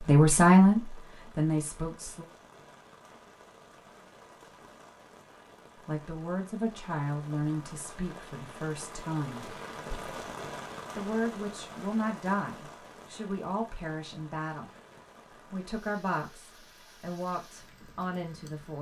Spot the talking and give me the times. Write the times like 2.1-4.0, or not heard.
0.0-2.2, 5.8-9.6, 10.9-14.7, 15.5-18.7.